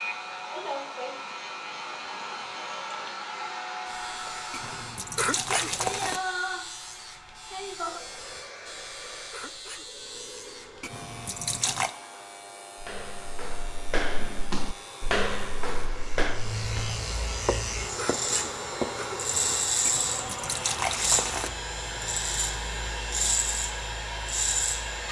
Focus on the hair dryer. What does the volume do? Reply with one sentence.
The loudness of the hair dryer goes down, then up.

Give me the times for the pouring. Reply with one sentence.
You can hear the pouring from 4.5 to 6.2 s, from 10.8 to 11.9 s and from 19.9 to 21.5 s.